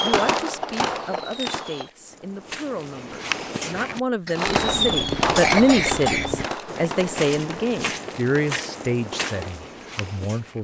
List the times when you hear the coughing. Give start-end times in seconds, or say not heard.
4.2-6.2.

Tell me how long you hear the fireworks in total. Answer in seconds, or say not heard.
7 s.